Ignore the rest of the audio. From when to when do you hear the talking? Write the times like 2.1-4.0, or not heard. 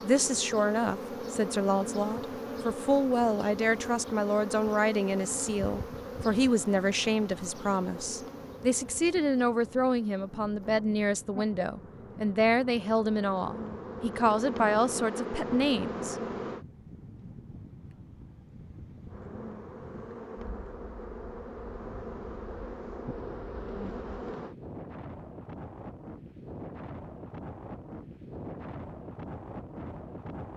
0.0-16.1.